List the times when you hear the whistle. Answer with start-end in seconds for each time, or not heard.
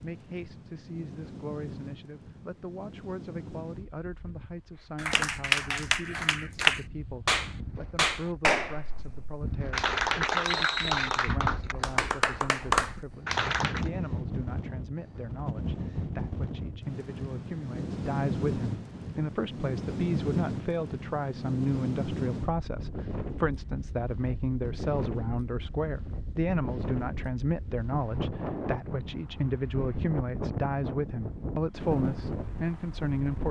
10.4-11.3.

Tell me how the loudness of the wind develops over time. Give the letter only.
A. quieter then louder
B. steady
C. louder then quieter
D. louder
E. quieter
D.